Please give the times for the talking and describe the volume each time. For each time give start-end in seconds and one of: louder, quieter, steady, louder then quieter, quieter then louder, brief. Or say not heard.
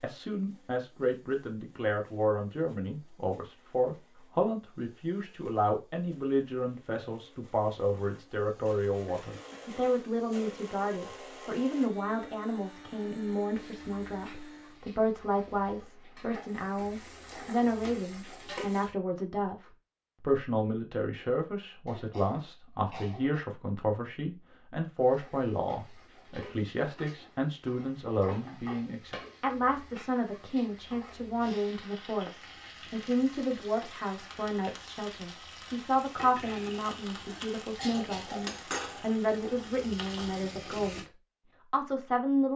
0.0-19.6 steady
20.2-41.1 steady
41.7-42.5 brief.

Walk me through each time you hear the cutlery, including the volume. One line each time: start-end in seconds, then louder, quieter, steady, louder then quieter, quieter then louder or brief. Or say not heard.
not heard.